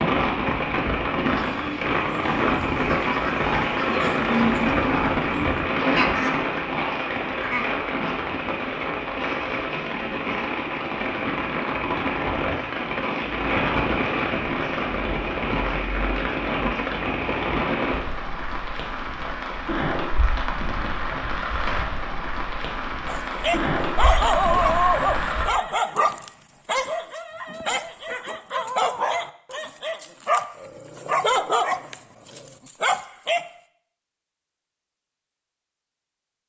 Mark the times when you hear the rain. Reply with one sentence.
The rain can be heard from 0.0 to 25.4 s.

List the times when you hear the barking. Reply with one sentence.
The barking can be heard from 23.1 to 33.5 s.